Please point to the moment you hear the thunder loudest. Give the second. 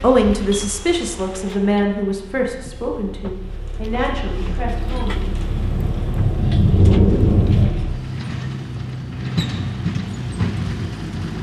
7 s.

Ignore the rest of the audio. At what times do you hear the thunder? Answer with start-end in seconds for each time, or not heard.
4.7-7.7.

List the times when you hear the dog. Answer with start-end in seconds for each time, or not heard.
not heard.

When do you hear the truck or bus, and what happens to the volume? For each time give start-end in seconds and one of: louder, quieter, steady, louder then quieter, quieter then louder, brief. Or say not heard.
0.0-11.3 louder.